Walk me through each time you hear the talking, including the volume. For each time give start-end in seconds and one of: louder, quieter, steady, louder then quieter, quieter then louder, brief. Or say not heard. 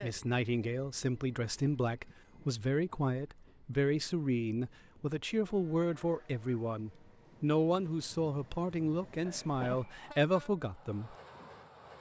0.0-11.2 steady.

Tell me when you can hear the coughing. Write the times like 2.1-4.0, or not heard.
9.2-10.0.